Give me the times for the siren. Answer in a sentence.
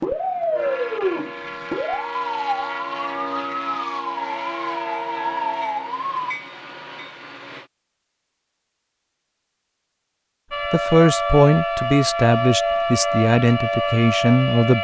You can hear the siren from 0.0 to 6.3 s and from 10.5 to 14.7 s.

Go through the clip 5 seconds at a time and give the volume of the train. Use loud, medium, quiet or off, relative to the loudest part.
loud, loud, off.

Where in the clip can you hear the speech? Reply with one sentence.
You can hear the speech from 10.7 to 14.7 s.